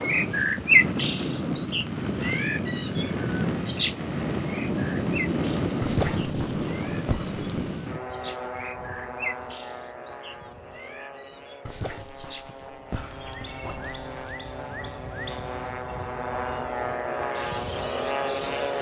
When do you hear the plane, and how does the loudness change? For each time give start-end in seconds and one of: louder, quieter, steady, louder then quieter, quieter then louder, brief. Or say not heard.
0.0-18.7 quieter then louder.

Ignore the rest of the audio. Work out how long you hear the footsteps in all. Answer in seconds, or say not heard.
not heard.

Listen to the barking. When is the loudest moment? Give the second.
6 s.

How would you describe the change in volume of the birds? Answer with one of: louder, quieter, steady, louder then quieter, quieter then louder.
quieter.